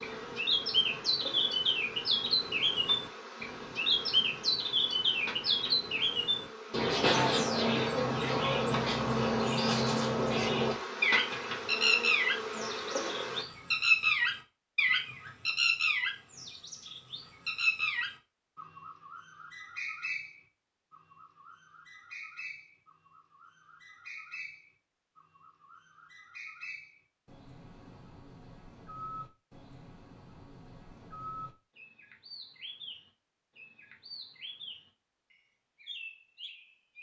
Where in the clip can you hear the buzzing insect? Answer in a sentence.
The buzzing insect can be heard from 0.0 to 13.4 s.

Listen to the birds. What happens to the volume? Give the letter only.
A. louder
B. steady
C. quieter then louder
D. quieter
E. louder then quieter
D.